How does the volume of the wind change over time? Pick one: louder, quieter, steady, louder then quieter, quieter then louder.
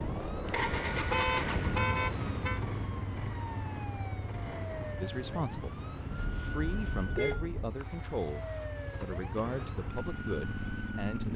quieter.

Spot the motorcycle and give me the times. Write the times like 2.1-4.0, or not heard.
0.0-11.3.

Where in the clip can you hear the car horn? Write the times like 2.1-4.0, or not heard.
1.1-2.6, 6.1-7.8.